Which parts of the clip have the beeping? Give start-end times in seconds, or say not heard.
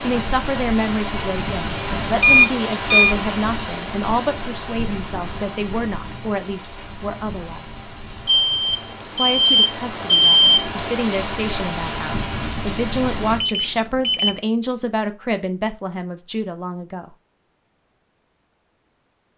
2.2-3.1, 8.2-10.7, 13.4-14.3.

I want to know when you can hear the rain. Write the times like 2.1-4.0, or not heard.
0.0-13.4.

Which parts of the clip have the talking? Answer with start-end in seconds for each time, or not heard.
0.0-7.8, 9.2-17.1.